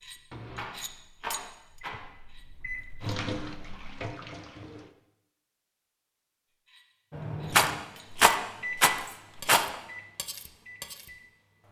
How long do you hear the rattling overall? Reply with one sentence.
The rattling can be heard for 4 seconds in total.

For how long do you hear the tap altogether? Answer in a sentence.
You can hear the tap for 2 seconds altogether.